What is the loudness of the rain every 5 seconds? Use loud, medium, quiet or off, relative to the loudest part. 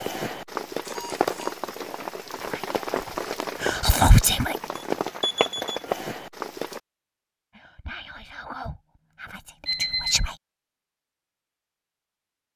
loud, loud, off.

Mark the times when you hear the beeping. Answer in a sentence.
You can hear the beeping from 0.8 to 1.6 s, from 4.8 to 5.9 s and from 9.7 to 10.3 s.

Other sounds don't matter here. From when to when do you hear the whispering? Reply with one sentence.
You can hear the whispering from 2.4 to 4.5 s and from 7.5 to 10.3 s.